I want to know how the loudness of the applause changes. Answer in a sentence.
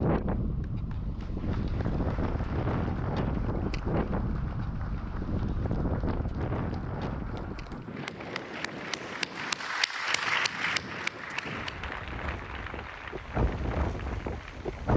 The volume of the applause goes up, then down.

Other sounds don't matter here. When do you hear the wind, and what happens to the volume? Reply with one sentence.
You can hear the wind from 0.0 to 14.9 s, getting quieter then louder.